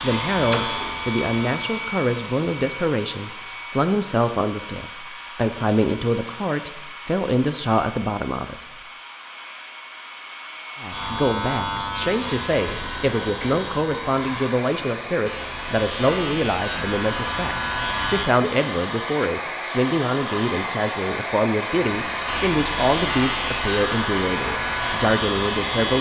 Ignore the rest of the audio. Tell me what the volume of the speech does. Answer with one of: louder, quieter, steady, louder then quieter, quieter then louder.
steady.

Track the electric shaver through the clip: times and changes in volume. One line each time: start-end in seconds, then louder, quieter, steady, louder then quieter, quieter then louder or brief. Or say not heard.
0.0-2.8 brief
10.8-18.3 quieter then louder
21.8-25.9 steady.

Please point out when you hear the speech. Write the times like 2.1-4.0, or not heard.
0.0-8.6, 10.8-25.9.